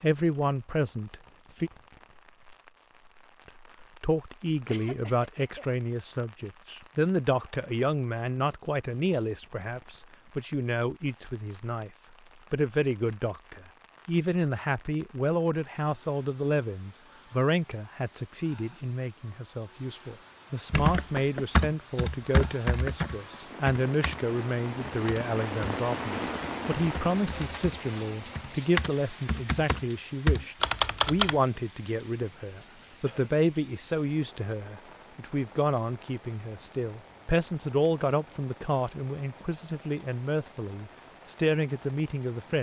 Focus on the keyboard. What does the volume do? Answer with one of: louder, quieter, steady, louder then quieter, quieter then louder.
quieter then louder.